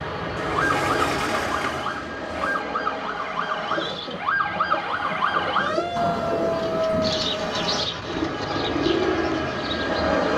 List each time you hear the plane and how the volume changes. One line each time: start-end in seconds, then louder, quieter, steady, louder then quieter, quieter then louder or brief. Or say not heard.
0.0-10.3 quieter then louder.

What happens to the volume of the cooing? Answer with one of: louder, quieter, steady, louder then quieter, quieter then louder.
louder.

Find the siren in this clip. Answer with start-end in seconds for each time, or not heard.
0.0-7.2.